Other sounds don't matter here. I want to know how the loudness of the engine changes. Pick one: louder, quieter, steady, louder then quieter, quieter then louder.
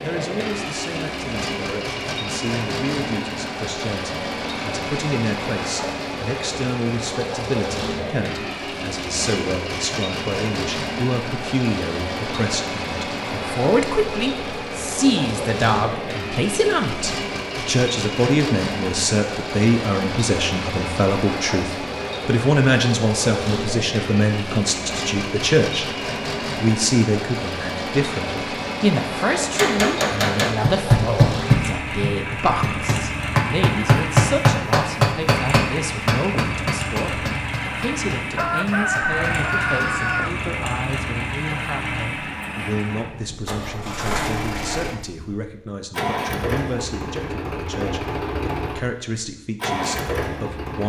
steady.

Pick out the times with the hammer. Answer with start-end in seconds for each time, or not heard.
29.5-39.8.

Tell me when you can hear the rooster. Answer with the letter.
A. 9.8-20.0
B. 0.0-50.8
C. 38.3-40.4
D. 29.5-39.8
C.